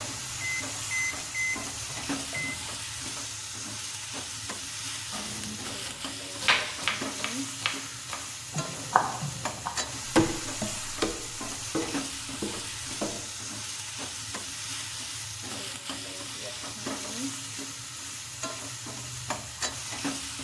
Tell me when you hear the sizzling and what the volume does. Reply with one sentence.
The sizzling can be heard from 0.0 to 20.3 s, at a steady volume.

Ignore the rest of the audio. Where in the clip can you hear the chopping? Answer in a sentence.
You can hear the chopping from 5.1 to 13.2 s.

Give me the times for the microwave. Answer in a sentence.
You can hear the microwave from 0.2 to 2.6 s.